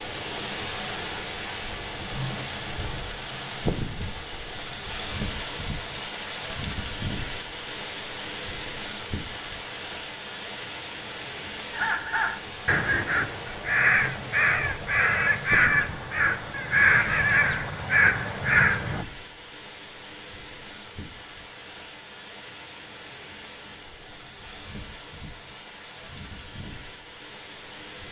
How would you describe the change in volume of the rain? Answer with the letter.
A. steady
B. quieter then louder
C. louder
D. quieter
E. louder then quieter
D.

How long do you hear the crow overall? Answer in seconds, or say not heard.
7 s.